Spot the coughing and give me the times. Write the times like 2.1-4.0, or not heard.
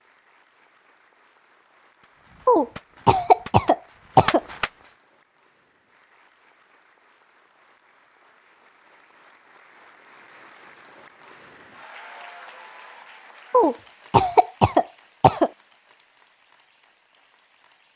2.5-4.4, 13.5-15.5.